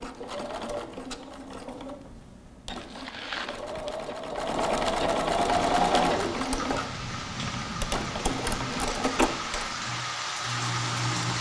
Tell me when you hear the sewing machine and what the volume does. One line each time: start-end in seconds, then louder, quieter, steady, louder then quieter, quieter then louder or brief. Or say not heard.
0.0-11.3 louder then quieter.